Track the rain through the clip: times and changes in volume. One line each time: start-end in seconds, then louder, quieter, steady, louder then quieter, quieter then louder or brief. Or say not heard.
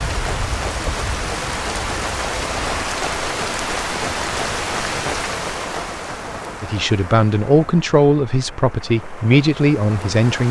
0.0-10.4 quieter.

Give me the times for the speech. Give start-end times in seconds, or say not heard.
6.6-10.4.